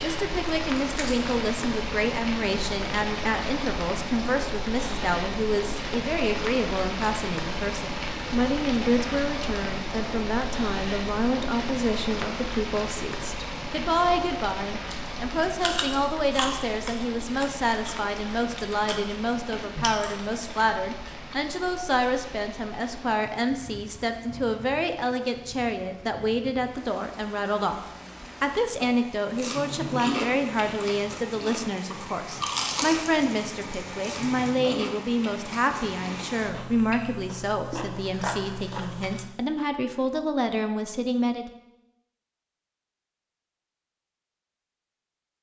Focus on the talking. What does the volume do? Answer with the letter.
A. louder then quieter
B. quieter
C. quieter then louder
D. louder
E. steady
E.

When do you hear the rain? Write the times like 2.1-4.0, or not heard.
0.0-36.5.